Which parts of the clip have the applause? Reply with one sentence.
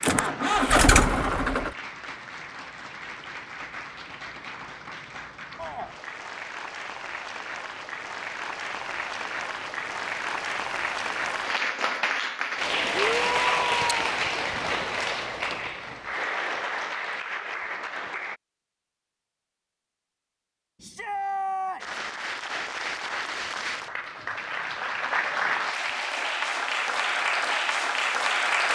The applause can be heard from 0.0 to 18.4 s and from 21.8 to 28.7 s.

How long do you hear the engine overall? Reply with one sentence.
You can hear the engine for 2 seconds altogether.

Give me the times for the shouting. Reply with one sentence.
The shouting can be heard from 5.5 to 6.0 s, from 13.1 to 14.0 s and from 20.8 to 22.1 s.